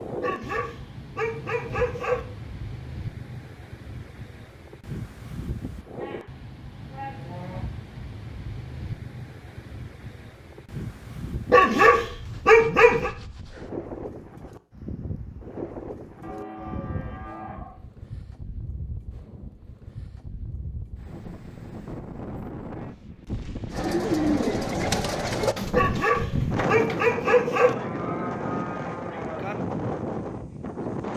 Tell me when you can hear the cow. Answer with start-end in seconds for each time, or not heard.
5.9-7.6, 16.2-17.8, 27.8-29.6.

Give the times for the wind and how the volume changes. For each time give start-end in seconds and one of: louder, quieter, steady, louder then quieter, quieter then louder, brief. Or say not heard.
0.0-31.1 louder.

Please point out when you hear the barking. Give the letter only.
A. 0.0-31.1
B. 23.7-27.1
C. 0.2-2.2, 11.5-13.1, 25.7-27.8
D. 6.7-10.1
C.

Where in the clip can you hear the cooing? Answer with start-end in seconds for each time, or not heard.
23.7-27.1.